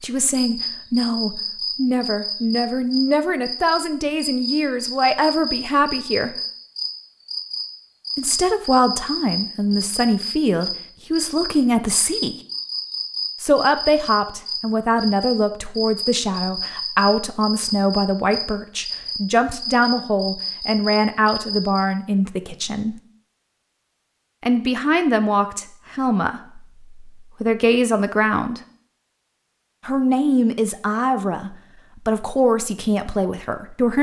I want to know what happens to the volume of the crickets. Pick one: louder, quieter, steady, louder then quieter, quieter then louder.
steady.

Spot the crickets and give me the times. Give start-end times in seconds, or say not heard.
0.3-21.8.